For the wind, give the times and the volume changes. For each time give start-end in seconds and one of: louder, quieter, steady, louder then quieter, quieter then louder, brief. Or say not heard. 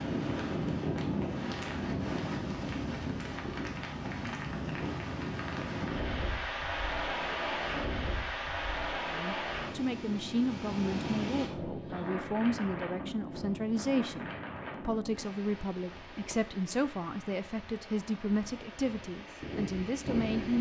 0.0-20.5 quieter.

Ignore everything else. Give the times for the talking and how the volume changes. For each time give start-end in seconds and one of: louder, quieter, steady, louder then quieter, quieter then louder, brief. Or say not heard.
9.1-20.5 steady.